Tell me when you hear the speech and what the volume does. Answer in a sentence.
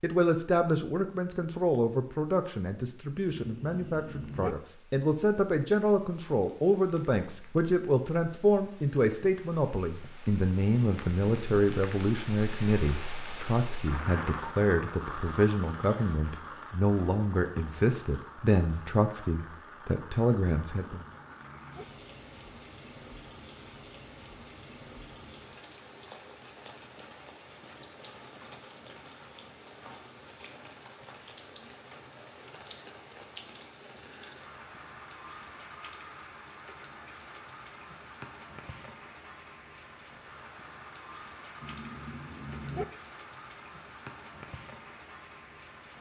You can hear the speech from 0.0 to 21.1 s, at a steady volume.